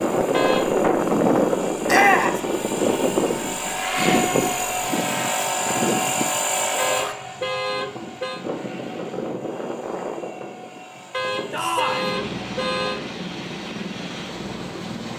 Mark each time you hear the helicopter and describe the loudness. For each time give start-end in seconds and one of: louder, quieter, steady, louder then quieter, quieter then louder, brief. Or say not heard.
0.0-15.1 quieter.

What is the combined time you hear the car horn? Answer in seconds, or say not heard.
4 s.